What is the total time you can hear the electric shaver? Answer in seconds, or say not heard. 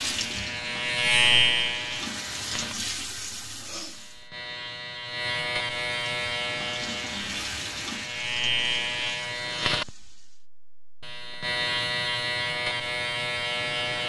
14 s.